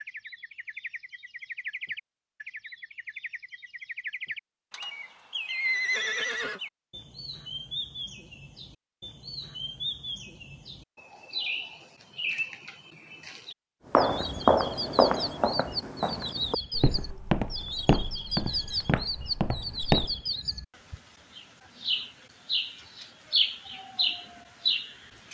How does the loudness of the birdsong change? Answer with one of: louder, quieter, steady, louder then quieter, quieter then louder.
louder.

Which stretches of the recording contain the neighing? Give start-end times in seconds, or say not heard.
5.5-6.6.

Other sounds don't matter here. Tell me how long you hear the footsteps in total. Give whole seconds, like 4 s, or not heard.
6 s.